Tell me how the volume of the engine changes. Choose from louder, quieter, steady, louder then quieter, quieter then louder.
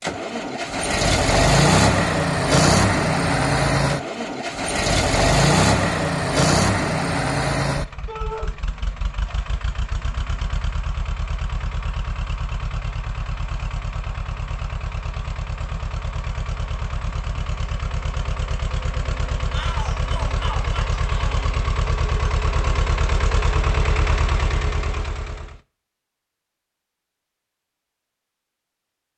quieter then louder.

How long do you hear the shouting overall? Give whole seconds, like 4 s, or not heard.
2 s.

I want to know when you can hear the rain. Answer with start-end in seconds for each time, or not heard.
not heard.